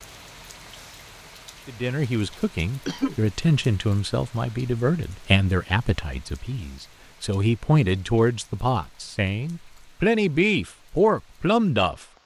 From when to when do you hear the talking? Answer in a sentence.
You can hear the talking from 1.6 to 12.1 s.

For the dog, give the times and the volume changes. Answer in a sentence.
The dog can't be heard in this clip.